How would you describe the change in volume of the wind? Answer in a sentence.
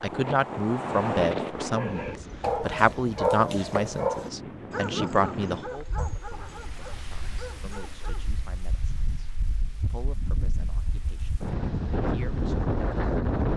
The volume of the wind goes down, then up.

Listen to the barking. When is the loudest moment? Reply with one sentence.
The volume of the barking peaks at 3 seconds.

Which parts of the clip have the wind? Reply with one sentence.
You can hear the wind from 0.0 to 13.5 s.